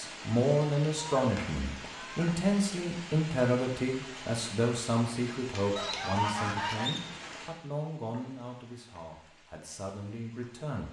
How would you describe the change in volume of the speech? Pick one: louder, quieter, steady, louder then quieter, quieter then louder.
quieter.